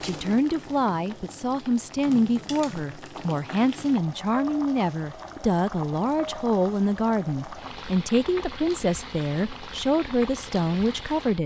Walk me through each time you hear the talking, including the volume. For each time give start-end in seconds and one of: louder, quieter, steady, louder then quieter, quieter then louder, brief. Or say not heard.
0.0-11.4 steady.